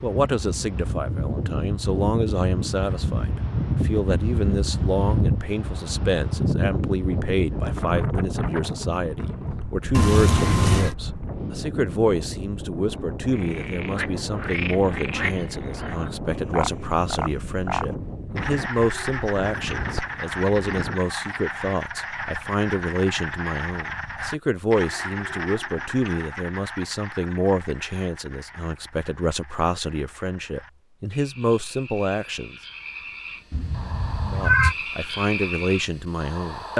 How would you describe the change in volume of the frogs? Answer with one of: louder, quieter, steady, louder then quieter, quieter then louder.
quieter then louder.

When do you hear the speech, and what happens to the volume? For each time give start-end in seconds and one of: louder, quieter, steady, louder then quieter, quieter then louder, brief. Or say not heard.
0.0-32.5 steady
34.3-36.7 brief.